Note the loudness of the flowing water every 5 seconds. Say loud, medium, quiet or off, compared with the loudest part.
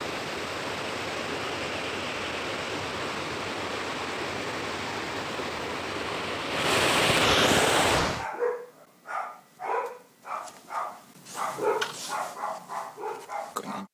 medium, loud, off.